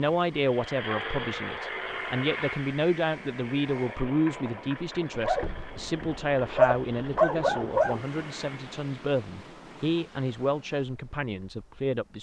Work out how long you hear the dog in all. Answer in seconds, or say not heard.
3 s.